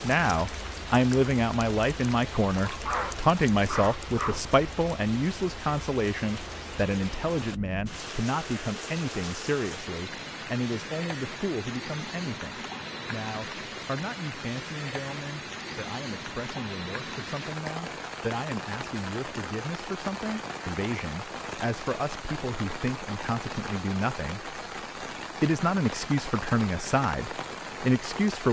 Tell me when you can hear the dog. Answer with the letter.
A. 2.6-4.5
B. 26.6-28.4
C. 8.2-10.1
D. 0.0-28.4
A.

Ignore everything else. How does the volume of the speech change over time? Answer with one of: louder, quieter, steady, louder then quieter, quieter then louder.
quieter then louder.